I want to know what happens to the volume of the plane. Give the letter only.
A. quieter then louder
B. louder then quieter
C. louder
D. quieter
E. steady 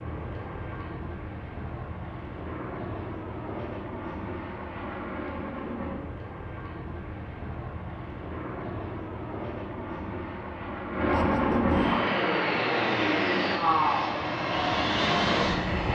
C.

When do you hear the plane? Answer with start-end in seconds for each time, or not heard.
0.0-15.8.